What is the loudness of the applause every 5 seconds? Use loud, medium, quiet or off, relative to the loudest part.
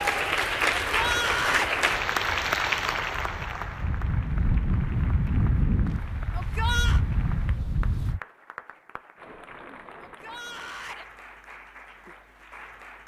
loud, quiet, quiet.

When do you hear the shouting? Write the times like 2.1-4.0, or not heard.
0.9-1.8, 6.3-7.0, 10.0-11.1.